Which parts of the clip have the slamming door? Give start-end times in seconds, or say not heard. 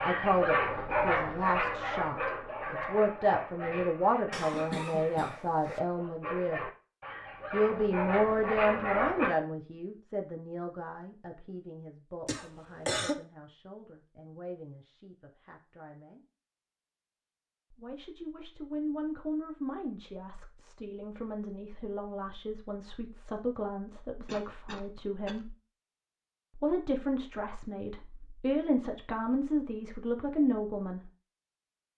not heard.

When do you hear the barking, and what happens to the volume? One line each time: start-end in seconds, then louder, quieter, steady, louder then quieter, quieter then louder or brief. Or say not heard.
0.0-9.3 quieter then louder.